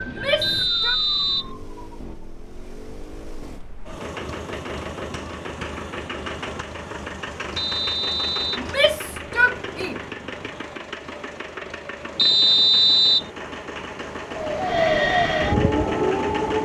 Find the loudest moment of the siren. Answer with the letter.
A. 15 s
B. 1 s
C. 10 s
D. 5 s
A.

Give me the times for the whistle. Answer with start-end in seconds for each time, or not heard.
0.4-1.5, 7.5-8.7, 12.2-13.3.